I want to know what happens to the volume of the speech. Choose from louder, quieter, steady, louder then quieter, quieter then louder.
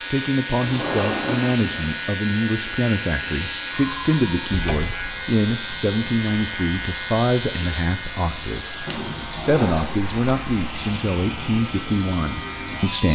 steady.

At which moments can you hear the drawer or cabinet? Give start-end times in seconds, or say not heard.
0.6-1.9, 4.5-4.9, 8.8-10.1.